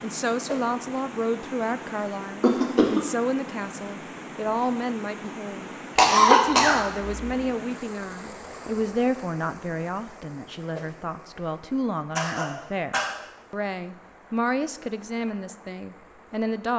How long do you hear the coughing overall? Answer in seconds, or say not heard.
3 s.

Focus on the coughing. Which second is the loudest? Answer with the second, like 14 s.
6 s.